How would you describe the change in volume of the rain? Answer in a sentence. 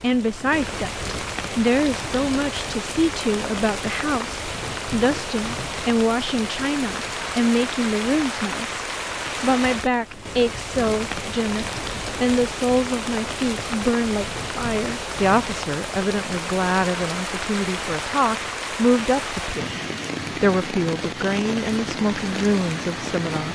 The loudness of the rain stays about the same.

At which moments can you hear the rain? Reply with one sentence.
The rain can be heard from 0.0 to 23.4 s.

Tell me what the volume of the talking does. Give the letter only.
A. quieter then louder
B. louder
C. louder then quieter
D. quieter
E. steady
E.